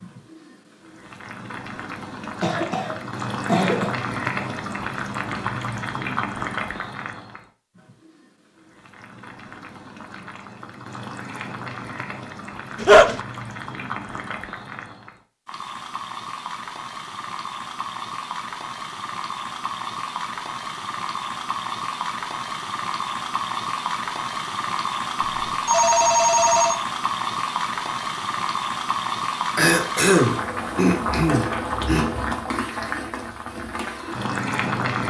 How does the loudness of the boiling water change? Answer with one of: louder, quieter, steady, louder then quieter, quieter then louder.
quieter then louder.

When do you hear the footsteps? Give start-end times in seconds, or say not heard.
not heard.